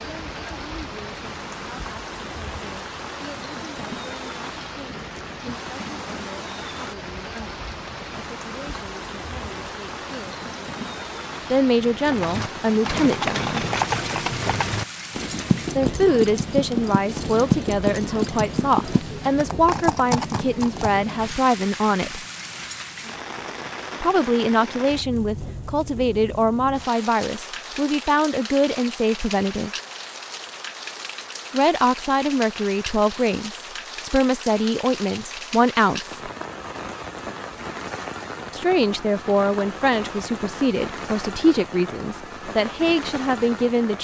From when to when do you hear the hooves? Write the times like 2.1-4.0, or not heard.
12.1-20.9.